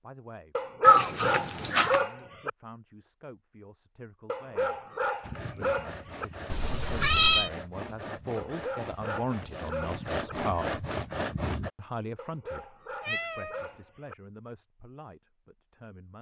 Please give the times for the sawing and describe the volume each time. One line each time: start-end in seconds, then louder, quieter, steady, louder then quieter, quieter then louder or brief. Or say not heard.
5.2-11.7 louder.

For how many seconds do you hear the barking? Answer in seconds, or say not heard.
8 s.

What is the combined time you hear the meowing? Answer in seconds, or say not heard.
3 s.